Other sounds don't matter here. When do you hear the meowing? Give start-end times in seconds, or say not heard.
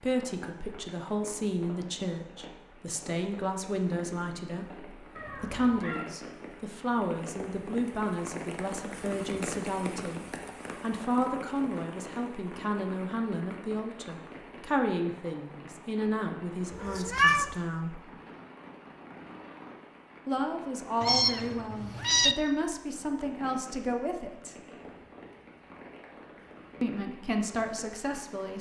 5.2-6.0, 16.8-17.6, 21.0-22.4.